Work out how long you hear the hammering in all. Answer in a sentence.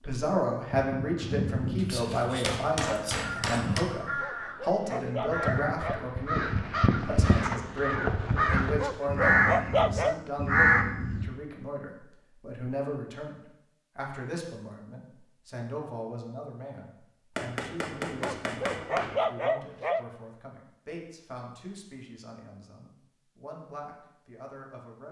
You can hear the hammering for 4 seconds altogether.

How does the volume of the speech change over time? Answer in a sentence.
The loudness of the speech goes down.